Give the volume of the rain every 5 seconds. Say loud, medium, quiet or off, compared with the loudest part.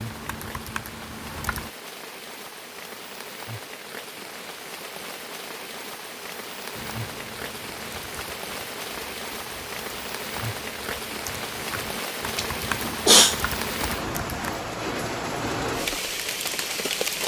medium, medium, loud, loud.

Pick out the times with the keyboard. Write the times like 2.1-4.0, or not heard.
0.0-1.7, 6.8-14.6.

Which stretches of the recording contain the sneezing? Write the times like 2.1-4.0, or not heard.
12.3-13.4.